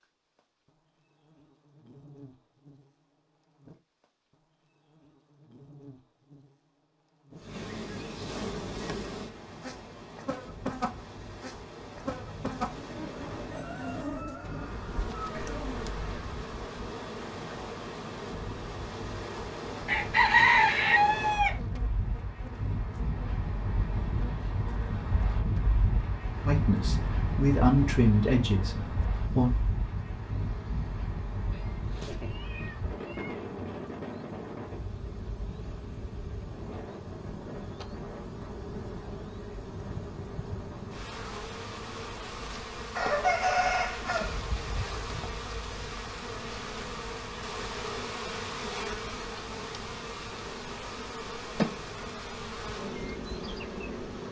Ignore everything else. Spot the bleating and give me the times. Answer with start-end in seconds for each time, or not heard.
not heard.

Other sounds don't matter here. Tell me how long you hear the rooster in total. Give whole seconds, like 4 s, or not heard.
7 s.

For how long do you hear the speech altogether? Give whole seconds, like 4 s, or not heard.
3 s.